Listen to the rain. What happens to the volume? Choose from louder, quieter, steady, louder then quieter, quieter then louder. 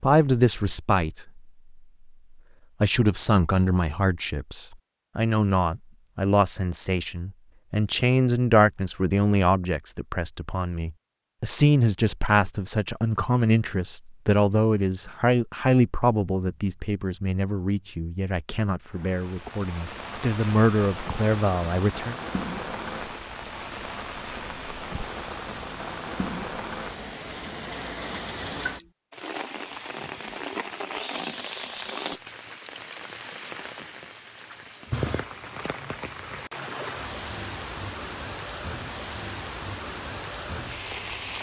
steady.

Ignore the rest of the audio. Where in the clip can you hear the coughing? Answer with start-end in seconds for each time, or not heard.
not heard.